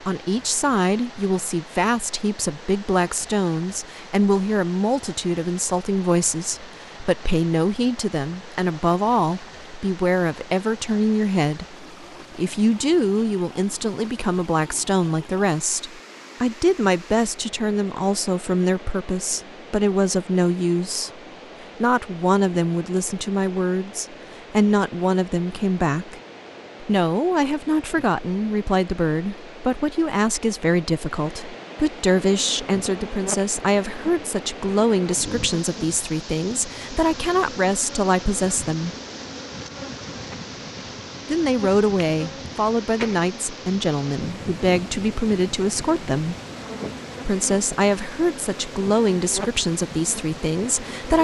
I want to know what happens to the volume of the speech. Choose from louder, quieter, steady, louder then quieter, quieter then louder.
steady.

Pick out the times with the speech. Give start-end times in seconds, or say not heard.
0.0-21.1, 21.8-26.2, 26.8-39.0, 41.3-46.4, 47.2-51.1.